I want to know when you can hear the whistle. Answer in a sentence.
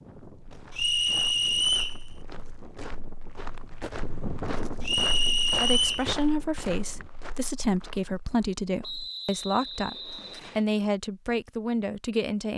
The whistle can be heard from 0.8 to 2.0 s, from 4.8 to 6.0 s and from 8.8 to 10.7 s.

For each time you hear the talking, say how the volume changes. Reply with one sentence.
The talking can be heard from 5.5 to 12.5 s, at a steady volume.